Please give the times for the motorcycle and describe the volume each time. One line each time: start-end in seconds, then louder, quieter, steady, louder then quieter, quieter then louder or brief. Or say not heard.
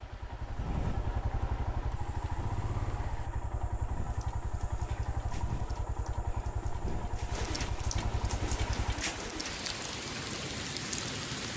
0.0-11.5 quieter.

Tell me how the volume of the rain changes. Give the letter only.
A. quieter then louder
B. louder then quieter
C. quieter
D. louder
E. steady
D.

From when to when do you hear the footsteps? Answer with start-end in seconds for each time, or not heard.
not heard.